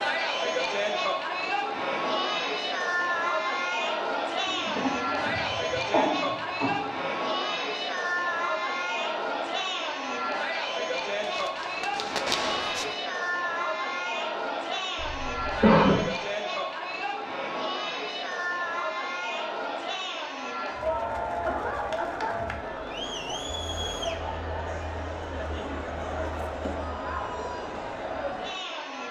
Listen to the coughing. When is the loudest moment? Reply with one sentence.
The volume of the coughing peaks at 16 seconds.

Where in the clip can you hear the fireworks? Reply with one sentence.
You can hear the fireworks from 11.2 to 12.9 s.